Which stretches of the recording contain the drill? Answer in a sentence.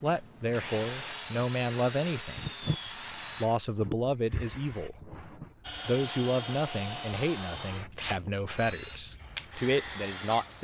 You can hear the drill from 0.0 to 3.5 s and from 5.6 to 10.5 s.